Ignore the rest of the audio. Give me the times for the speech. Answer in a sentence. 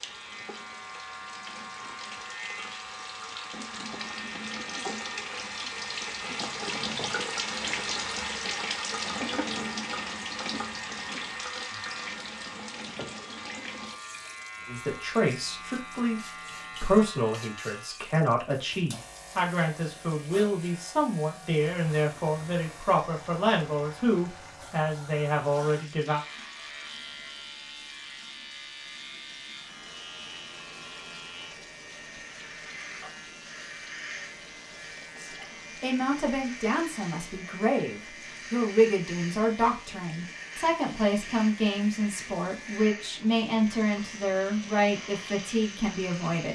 You can hear the speech from 14.7 to 26.2 s and from 35.1 to 46.4 s.